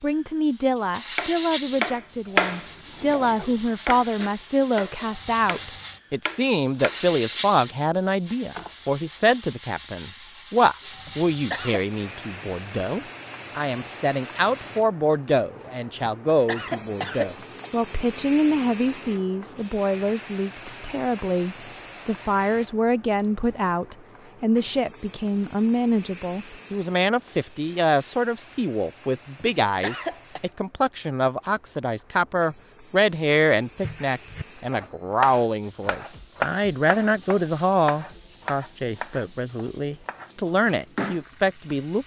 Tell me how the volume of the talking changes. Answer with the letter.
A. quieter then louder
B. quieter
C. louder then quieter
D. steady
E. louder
D.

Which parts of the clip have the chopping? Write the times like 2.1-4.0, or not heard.
1.1-7.0, 7.7-8.7, 33.6-40.9.